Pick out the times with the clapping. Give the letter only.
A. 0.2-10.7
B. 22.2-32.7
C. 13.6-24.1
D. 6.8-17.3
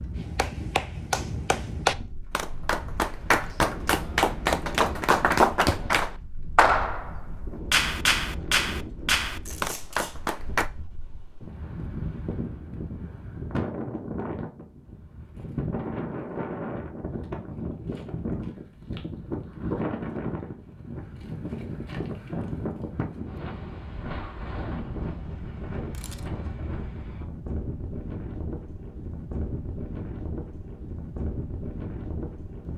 A.